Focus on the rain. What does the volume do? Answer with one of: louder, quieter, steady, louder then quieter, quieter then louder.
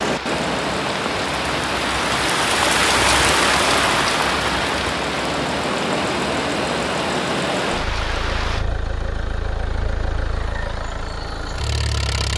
louder then quieter.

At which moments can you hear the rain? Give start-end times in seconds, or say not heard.
0.0-8.7.